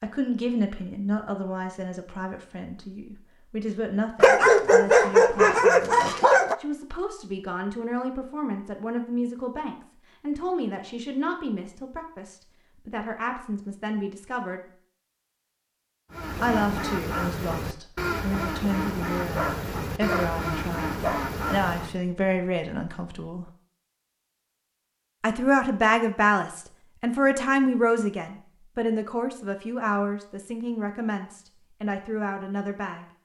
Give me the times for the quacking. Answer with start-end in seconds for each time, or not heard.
16.1-21.9.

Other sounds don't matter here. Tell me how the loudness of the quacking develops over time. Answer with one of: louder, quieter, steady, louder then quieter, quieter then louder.
steady.